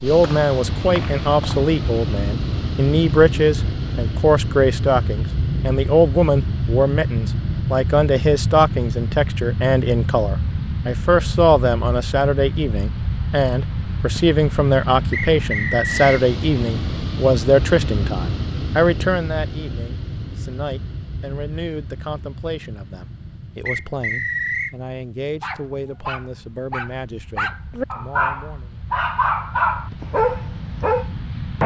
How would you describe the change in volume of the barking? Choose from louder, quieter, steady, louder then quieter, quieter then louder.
louder.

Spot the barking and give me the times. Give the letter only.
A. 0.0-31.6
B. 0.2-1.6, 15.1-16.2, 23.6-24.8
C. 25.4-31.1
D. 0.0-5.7
C.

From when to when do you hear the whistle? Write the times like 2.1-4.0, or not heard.
0.2-1.6, 15.1-16.2, 23.6-24.8.